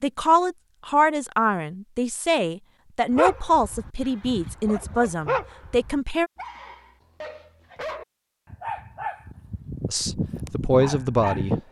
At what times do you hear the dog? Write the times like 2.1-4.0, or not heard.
3.1-11.6.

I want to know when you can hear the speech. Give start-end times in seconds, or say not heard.
0.0-6.3, 9.8-11.6.